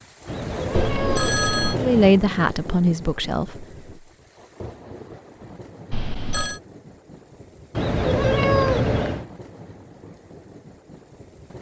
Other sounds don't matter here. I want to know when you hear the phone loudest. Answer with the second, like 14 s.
1 s.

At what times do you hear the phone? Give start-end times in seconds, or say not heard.
0.9-1.8, 5.9-6.6.